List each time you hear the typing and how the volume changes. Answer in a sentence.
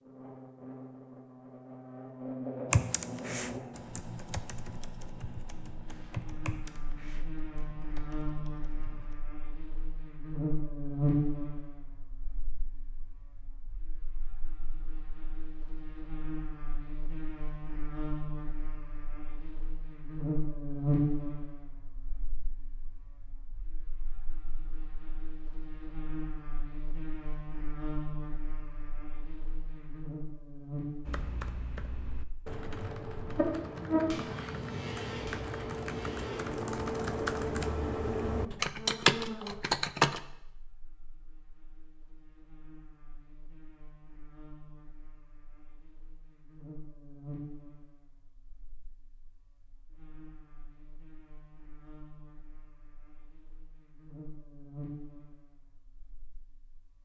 The typing can be heard from 2.7 to 9.2 s, getting quieter; and from 31.1 to 40.2 s, getting louder.